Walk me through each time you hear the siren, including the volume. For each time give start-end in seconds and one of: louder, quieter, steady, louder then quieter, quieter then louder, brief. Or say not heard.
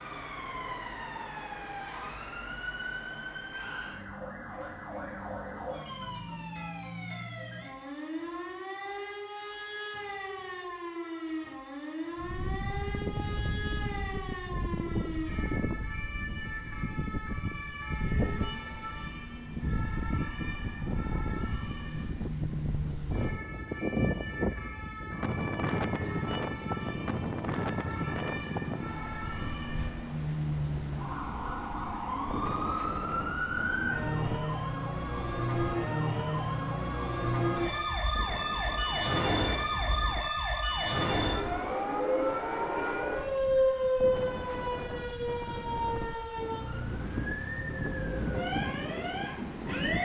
0.0-50.0 louder.